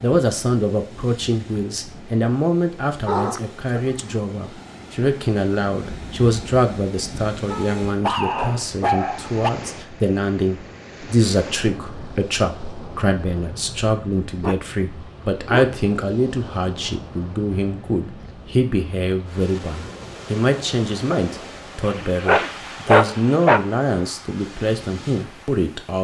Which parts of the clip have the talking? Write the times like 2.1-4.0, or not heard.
0.0-25.9.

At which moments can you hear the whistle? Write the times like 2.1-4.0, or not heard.
not heard.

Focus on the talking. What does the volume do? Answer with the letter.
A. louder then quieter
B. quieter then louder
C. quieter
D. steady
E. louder
D.